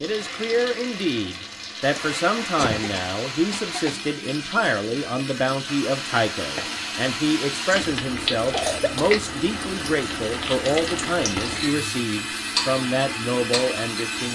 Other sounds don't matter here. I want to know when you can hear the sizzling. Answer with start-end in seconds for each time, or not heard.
0.0-14.3.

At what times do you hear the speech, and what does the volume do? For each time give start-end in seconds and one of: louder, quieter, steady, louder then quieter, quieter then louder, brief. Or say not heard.
0.0-14.3 steady.